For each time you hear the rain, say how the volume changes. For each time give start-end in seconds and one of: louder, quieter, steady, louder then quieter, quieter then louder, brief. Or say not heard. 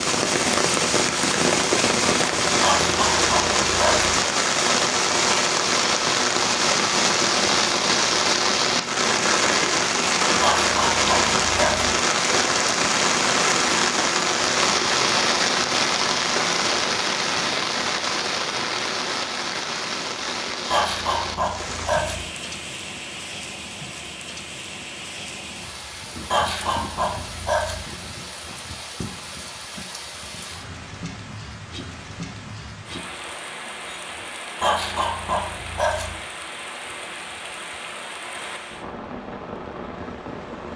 0.0-40.7 quieter.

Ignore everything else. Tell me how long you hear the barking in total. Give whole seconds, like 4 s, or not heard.
8 s.